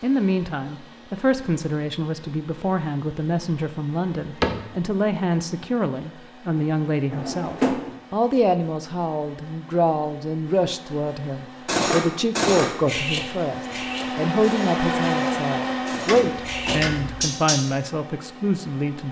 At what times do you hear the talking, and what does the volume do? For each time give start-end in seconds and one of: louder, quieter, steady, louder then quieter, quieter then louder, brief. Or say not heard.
0.0-19.0 steady.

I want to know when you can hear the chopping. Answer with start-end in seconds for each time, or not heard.
not heard.